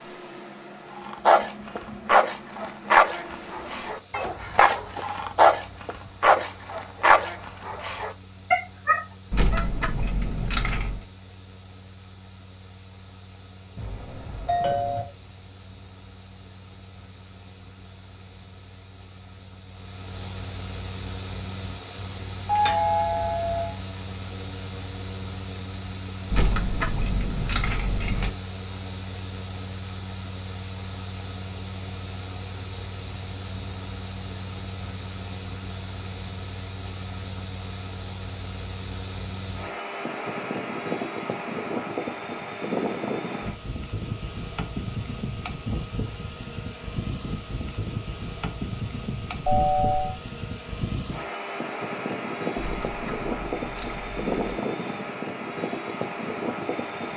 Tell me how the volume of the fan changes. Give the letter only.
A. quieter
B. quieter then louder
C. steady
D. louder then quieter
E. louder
E.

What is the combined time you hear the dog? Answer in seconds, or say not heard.
9 s.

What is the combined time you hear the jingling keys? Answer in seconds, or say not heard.
6 s.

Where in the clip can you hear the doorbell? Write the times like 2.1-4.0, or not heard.
13.8-15.1, 22.4-23.7, 49.5-50.1.